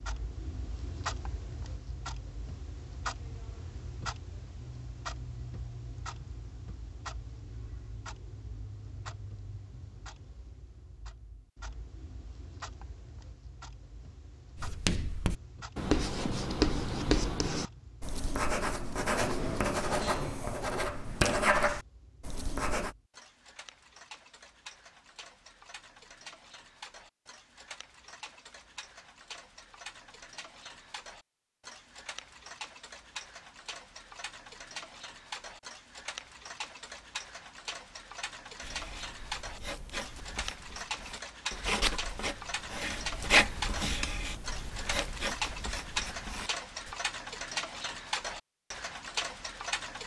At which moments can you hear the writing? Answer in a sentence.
The writing can be heard from 14.6 to 22.9 s and from 38.6 to 47.0 s.